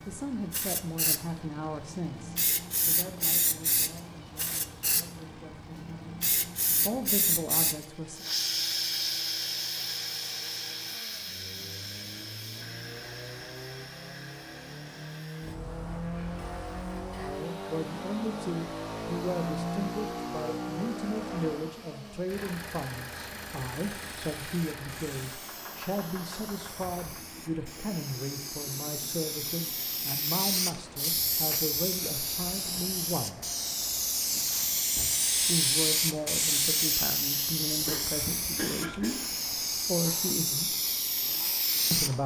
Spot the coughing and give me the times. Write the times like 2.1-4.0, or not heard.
37.9-39.2.